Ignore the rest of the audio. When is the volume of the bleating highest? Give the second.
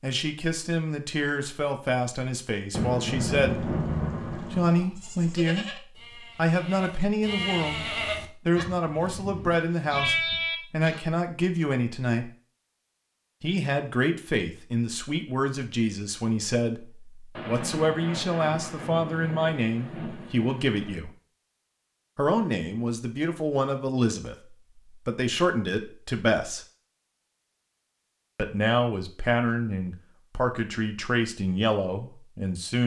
10 s.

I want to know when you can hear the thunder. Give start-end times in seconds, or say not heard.
2.7-4.8, 17.4-20.9.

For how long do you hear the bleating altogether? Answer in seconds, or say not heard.
6 s.